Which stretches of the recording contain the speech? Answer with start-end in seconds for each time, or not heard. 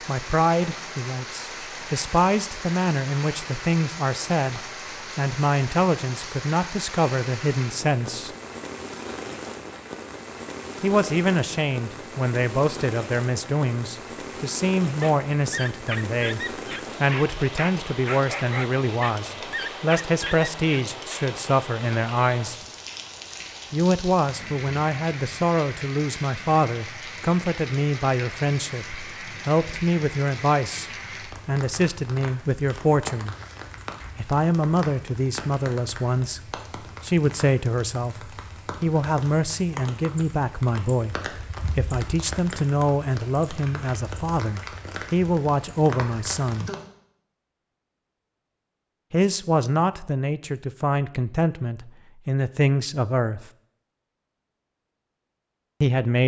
0.1-8.3, 10.8-22.6, 23.7-33.4, 34.1-46.7, 49.1-53.5, 55.8-56.2.